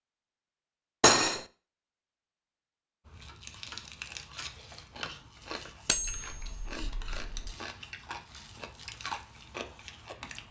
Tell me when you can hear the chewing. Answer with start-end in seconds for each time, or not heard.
3.0-10.4.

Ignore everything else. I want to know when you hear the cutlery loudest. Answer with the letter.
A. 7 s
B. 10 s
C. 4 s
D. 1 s
D.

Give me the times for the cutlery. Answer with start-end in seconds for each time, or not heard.
1.0-1.4, 5.8-7.5.